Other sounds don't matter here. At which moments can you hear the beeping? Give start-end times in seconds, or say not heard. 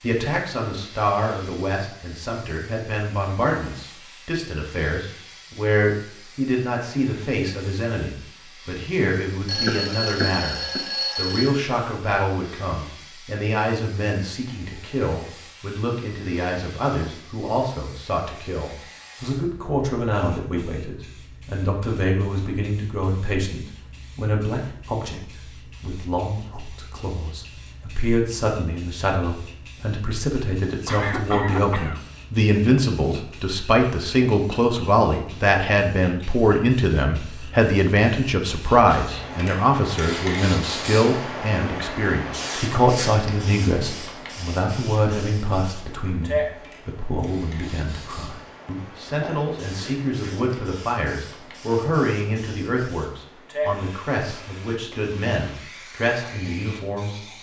9.4-11.6.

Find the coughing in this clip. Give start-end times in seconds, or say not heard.
9.7-10.8, 30.9-32.0, 49.2-50.1.